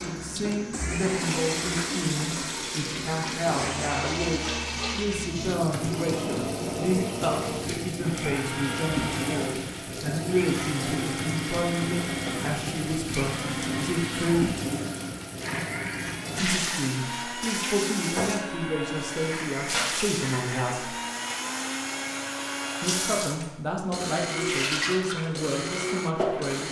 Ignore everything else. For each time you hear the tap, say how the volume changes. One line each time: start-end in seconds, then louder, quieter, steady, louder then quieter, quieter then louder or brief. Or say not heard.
0.0-26.6 steady.